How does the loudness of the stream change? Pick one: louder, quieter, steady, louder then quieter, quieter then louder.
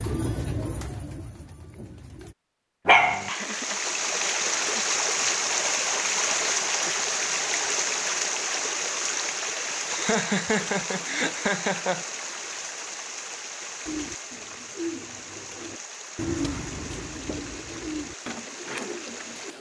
quieter.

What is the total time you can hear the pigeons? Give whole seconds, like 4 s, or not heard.
8 s.